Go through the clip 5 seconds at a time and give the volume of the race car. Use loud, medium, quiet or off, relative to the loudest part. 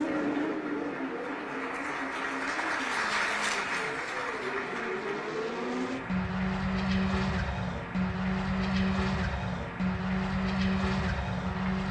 medium, loud, loud.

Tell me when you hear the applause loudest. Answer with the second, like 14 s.
3 s.